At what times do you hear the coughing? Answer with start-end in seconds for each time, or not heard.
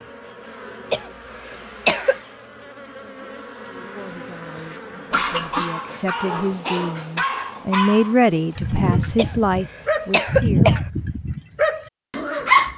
0.9-2.2, 5.1-5.8, 9.2-10.8.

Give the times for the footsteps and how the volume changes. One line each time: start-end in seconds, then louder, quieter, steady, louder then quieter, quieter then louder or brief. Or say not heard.
not heard.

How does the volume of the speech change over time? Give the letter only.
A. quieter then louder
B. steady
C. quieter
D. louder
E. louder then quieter
D.